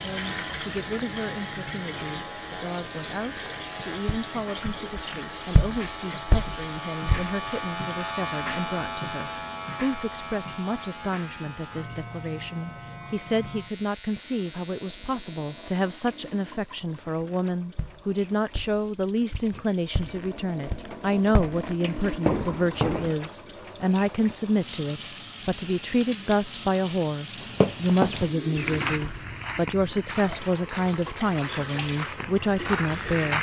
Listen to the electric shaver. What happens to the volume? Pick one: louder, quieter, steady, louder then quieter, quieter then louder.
louder then quieter.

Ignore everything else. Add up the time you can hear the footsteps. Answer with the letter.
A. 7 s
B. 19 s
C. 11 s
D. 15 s
B.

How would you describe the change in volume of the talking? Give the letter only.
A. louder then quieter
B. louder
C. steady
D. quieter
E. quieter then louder
B.